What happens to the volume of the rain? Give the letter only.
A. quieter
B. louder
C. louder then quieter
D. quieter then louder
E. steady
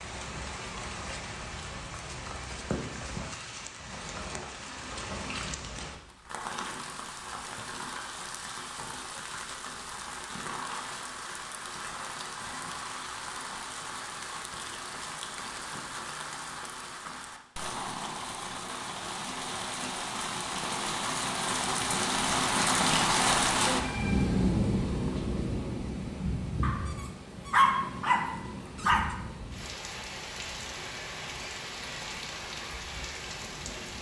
C.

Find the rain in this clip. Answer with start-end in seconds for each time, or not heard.
0.0-33.9.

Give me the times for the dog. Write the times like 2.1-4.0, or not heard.
26.6-29.1.